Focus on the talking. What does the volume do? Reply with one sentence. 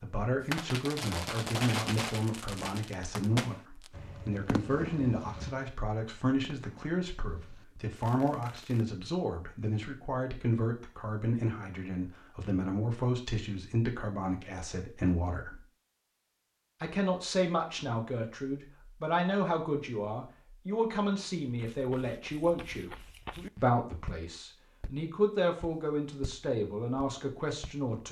The loudness of the talking stays about the same.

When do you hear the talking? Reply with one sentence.
You can hear the talking from 0.0 to 15.6 s, from 16.8 to 22.9 s and from 23.6 to 28.0 s.